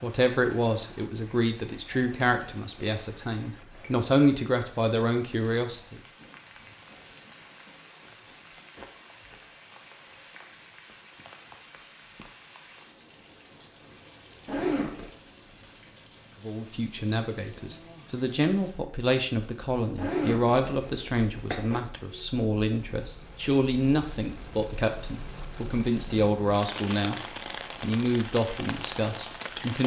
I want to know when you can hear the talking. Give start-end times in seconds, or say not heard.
0.0-6.0, 16.4-27.2, 27.8-29.8.